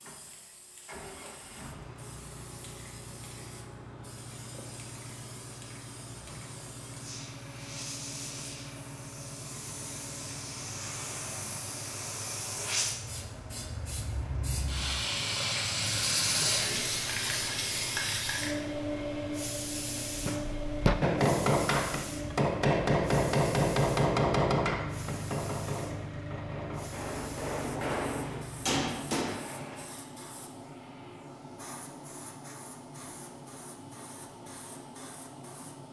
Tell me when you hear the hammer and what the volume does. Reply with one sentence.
The hammer can be heard from 20.1 to 29.6 s, getting quieter then louder.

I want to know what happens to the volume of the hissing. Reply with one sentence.
The loudness of the hissing goes up, then down.